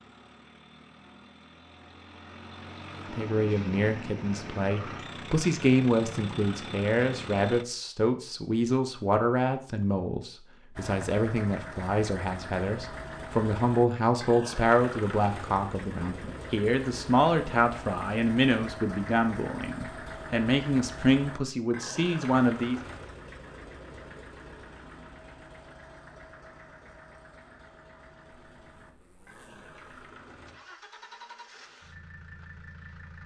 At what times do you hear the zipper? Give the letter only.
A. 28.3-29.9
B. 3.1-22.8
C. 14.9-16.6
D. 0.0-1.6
A.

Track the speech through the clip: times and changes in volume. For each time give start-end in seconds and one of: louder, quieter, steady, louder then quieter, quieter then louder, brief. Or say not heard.
3.1-22.8 steady.